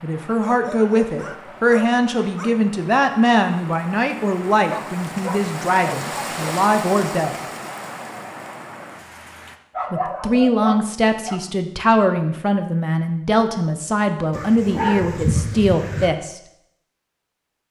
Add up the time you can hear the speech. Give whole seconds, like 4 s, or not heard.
14 s.